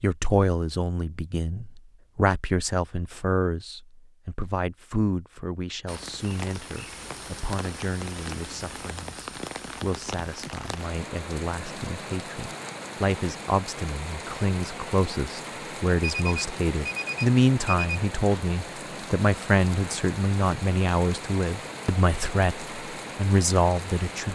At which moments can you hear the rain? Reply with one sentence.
The rain can be heard from 5.8 to 24.3 s.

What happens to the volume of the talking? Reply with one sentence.
The loudness of the talking goes down, then up.